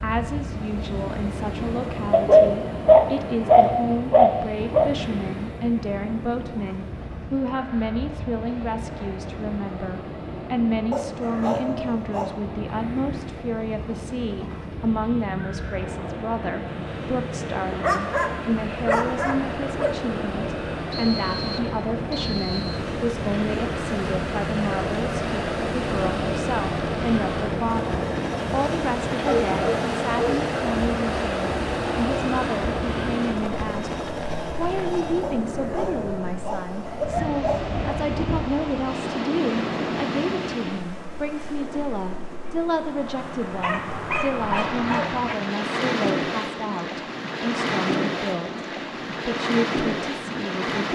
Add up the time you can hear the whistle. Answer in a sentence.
The whistle can be heard for 2 seconds in total.